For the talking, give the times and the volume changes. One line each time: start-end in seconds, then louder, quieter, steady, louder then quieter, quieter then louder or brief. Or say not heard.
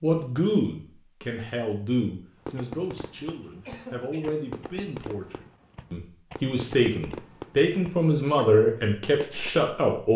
0.0-10.1 quieter then louder.